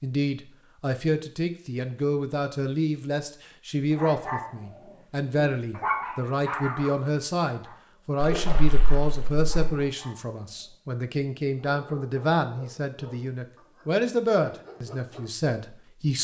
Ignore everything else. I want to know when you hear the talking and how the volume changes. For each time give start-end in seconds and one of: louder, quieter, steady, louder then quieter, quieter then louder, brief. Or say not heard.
0.0-16.1 steady.